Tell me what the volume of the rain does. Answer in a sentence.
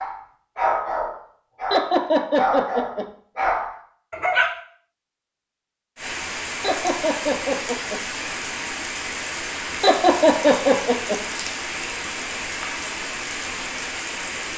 The volume of the rain stays about the same.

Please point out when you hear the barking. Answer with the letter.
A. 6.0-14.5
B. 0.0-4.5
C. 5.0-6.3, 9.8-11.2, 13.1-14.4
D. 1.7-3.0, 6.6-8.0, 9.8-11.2
B.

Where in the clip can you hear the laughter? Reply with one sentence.
The laughter can be heard from 1.7 to 3.0 s, from 6.6 to 8.0 s and from 9.8 to 11.2 s.